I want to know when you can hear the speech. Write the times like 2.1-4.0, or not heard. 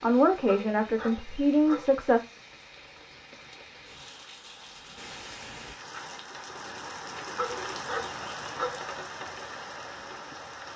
0.0-2.2.